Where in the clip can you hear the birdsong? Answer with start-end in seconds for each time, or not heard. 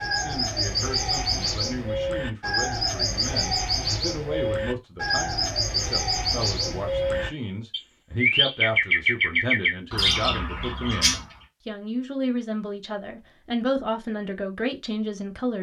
0.0-11.2.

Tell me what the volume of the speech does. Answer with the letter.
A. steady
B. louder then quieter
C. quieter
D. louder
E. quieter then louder
D.